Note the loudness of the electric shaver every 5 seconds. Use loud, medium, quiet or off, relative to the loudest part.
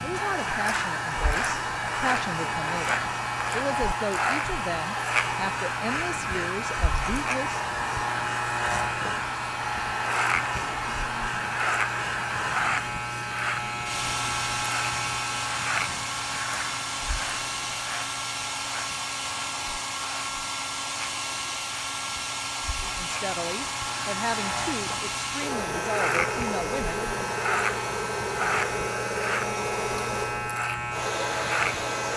loud, loud, loud, medium, medium, loud, loud.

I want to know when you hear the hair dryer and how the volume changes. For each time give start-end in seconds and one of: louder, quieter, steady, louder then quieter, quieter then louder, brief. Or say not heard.
0.0-32.1 steady.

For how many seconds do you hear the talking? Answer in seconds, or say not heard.
12 s.